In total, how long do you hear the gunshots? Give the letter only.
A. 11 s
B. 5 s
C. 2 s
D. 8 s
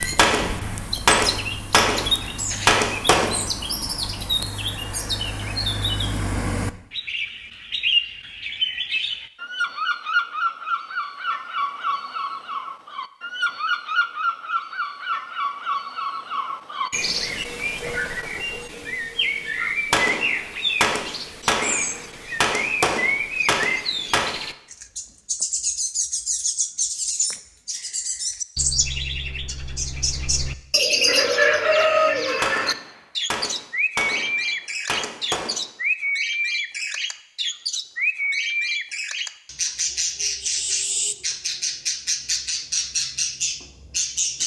A.